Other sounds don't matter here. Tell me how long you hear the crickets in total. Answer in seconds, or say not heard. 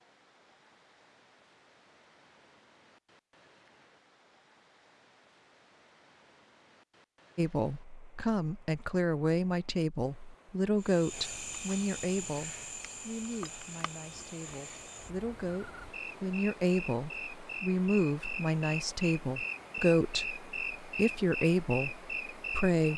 12 s.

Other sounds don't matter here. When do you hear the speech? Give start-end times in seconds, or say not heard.
7.3-22.9.